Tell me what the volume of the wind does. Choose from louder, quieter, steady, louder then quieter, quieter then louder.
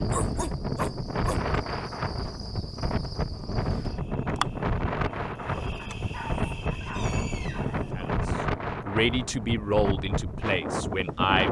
steady.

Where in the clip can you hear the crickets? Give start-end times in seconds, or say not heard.
0.0-8.2.